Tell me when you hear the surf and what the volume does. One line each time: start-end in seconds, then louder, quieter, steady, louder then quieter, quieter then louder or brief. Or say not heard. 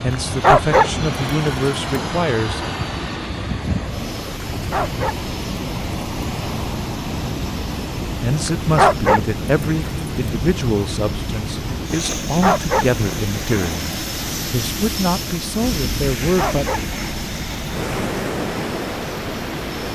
0.0-19.9 steady.